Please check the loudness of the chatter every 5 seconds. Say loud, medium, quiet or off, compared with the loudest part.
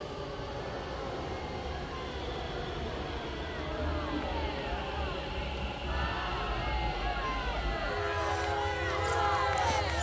medium, loud.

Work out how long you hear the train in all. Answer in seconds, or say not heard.
10 s.